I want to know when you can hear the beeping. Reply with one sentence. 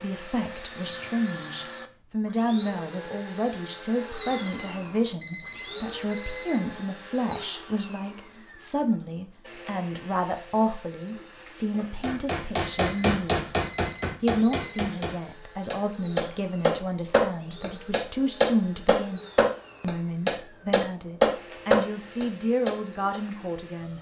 You can hear the beeping from 4.2 to 6.6 s and from 12.7 to 14.8 s.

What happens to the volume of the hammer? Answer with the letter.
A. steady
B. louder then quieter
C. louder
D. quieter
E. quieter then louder
C.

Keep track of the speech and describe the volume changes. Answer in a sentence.
The loudness of the speech stays about the same.